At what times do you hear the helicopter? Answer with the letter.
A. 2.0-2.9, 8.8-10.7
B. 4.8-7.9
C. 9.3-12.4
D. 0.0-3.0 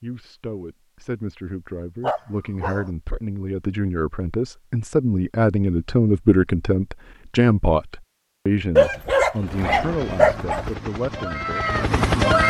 C.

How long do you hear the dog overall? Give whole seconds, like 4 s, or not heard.
3 s.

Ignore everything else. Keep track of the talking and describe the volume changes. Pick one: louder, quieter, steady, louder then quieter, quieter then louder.
louder then quieter.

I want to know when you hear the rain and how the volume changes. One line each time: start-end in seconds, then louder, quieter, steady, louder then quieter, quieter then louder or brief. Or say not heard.
not heard.